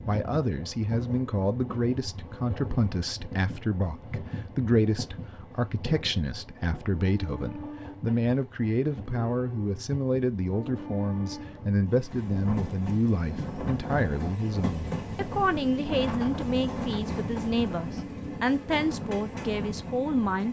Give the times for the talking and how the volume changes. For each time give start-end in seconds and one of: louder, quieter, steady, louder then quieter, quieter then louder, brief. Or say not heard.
0.1-20.4 steady.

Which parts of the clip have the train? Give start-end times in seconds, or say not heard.
0.0-20.4.